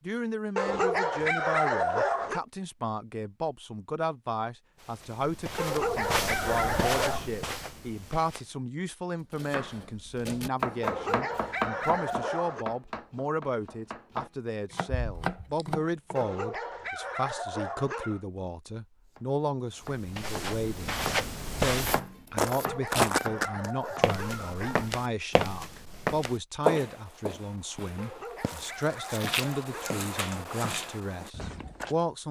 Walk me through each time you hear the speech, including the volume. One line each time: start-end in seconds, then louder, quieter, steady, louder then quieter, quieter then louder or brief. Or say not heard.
0.1-32.2 steady.